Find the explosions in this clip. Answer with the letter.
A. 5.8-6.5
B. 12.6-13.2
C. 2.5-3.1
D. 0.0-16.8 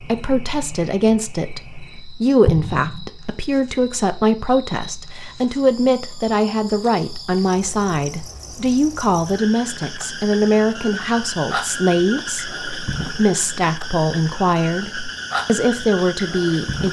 C.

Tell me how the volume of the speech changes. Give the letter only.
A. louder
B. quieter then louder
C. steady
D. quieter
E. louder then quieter
C.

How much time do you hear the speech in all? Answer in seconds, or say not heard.
17 s.